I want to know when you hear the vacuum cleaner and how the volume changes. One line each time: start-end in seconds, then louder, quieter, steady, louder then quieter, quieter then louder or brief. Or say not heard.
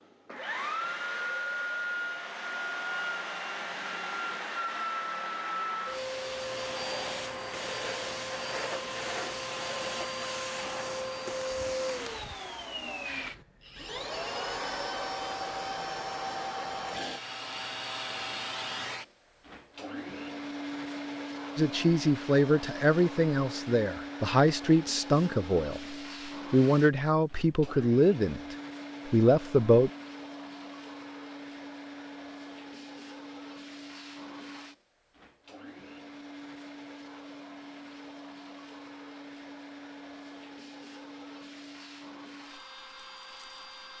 0.0-43.9 quieter.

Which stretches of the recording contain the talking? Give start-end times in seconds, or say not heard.
21.6-29.9.